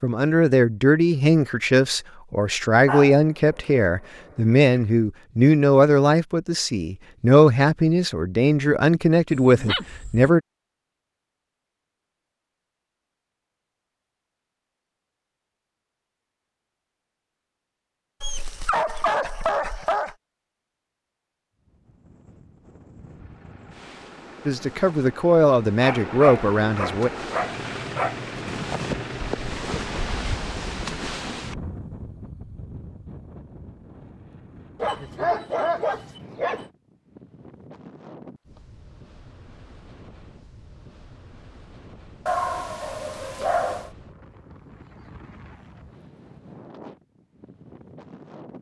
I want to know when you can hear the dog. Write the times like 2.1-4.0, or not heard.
2.9-4.8, 9.3-10.3, 18.2-20.1, 25.8-28.1, 34.8-36.6, 42.2-43.9.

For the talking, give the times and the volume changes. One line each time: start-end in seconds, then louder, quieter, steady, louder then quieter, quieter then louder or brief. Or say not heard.
0.0-10.4 steady
24.4-27.1 brief.